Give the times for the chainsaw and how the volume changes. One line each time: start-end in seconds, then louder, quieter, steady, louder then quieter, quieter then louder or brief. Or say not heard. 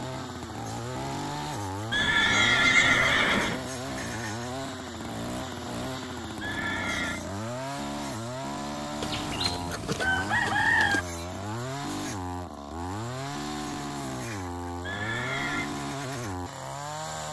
0.0-17.2 steady.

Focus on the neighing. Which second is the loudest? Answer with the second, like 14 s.
3 s.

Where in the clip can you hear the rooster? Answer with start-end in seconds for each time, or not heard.
9.0-11.1.